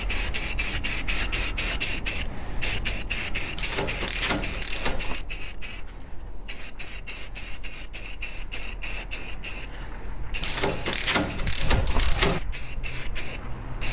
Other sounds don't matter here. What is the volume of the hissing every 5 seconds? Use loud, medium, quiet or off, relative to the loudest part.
loud, medium, medium.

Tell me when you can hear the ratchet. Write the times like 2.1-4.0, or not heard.
3.5-5.2, 10.4-12.4.